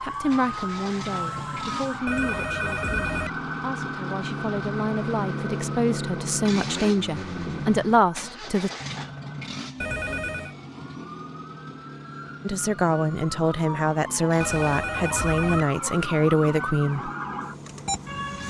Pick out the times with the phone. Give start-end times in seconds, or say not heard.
2.0-3.3, 9.8-10.6, 14.4-15.7.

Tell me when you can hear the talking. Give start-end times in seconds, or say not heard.
0.0-8.7, 12.4-17.1.